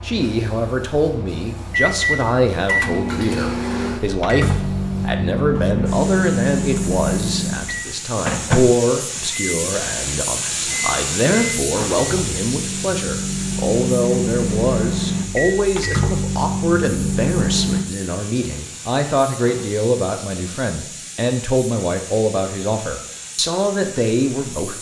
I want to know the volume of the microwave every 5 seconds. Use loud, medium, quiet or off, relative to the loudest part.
loud, loud, loud, loud, off.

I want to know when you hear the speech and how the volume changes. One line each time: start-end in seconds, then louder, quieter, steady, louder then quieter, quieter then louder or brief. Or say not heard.
0.0-24.7 steady.